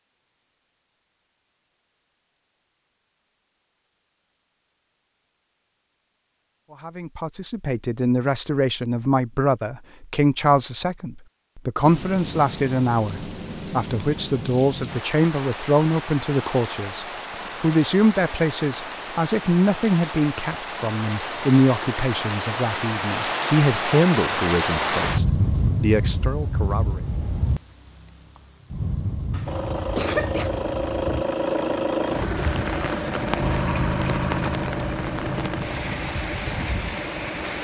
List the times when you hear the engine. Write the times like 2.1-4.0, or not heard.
29.4-37.6.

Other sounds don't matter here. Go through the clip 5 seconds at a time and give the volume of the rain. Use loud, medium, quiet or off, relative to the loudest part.
off, off, medium, medium, loud, loud, medium, medium.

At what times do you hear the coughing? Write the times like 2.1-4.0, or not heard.
29.3-30.5.